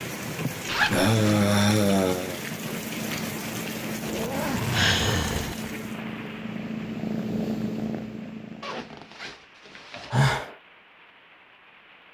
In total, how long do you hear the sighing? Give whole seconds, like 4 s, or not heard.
4 s.